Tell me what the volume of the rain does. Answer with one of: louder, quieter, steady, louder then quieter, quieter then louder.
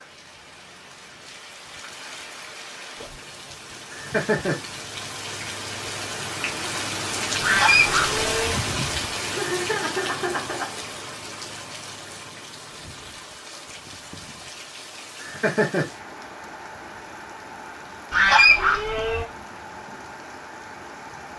louder then quieter.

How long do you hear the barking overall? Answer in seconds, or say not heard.
not heard.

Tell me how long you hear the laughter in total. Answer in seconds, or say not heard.
3 s.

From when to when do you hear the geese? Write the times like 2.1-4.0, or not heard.
7.4-8.6, 18.1-19.2.